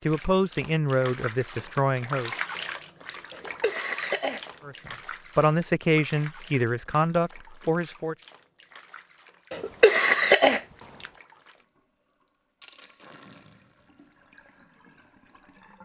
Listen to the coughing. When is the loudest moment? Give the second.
10 s.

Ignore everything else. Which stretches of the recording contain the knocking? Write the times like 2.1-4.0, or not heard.
not heard.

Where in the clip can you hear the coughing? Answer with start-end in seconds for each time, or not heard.
3.3-4.4, 9.5-11.1.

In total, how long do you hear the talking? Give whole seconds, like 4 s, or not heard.
6 s.